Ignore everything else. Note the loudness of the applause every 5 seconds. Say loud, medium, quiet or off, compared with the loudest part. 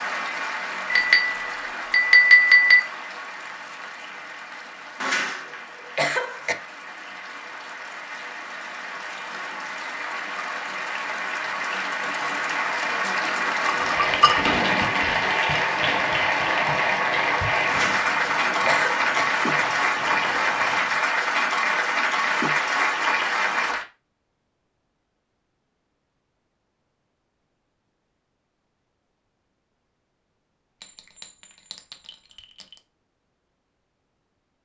medium, quiet, loud, loud, loud, off, off.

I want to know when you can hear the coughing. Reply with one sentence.
You can hear the coughing from 5.0 to 6.5 s and from 17.6 to 19.2 s.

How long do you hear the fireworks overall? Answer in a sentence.
You can hear the fireworks for 7 seconds altogether.